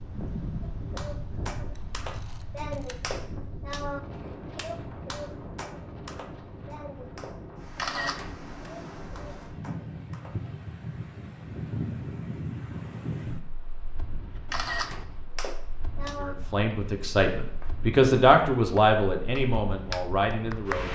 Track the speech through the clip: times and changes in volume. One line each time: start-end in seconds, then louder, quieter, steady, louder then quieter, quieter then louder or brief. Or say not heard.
16.1-20.9 louder then quieter.